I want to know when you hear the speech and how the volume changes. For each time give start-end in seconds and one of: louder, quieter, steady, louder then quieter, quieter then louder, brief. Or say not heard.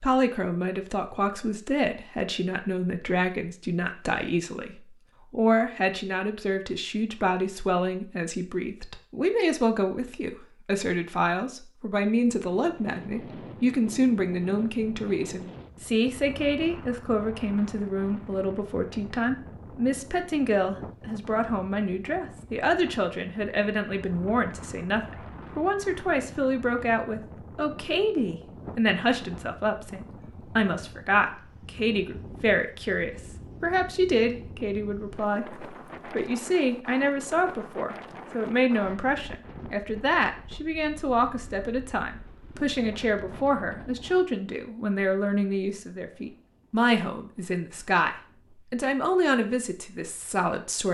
0.0-50.9 steady.